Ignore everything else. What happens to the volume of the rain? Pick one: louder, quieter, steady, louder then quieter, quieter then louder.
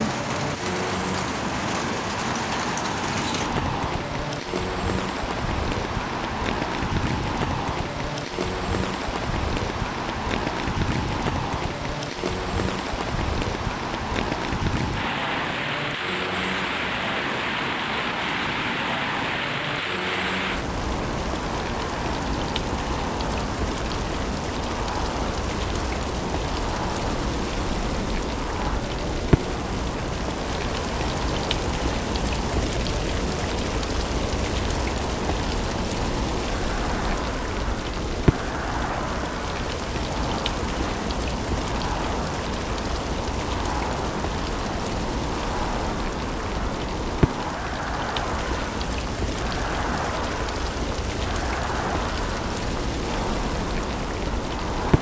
steady.